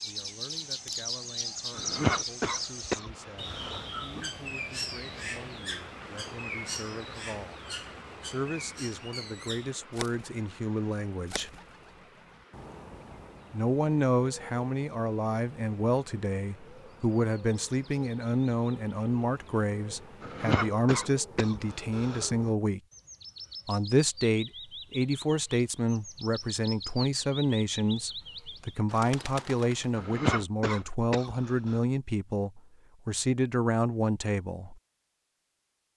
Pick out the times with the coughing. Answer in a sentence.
The coughing can be heard from 1.8 to 4.2 s, from 20.2 to 22.3 s and from 29.9 to 31.8 s.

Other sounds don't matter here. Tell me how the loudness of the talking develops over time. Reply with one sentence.
The loudness of the talking goes up.